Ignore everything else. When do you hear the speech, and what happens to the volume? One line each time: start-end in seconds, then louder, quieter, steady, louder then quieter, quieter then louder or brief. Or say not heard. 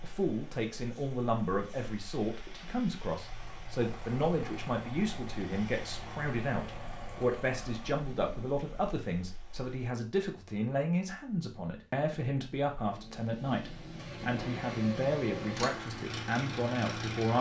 0.0-17.3 steady.